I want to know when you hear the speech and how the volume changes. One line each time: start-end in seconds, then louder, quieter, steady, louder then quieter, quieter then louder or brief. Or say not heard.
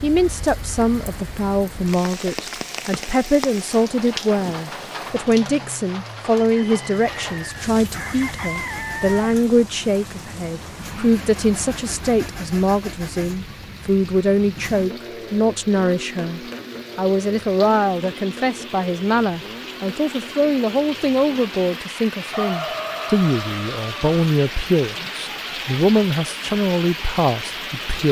0.0-28.0 steady.